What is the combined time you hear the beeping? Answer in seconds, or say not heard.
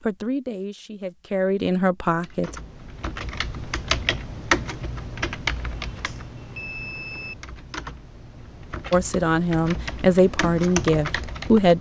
2 s.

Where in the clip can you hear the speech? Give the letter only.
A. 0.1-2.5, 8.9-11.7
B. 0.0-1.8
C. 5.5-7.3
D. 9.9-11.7
A.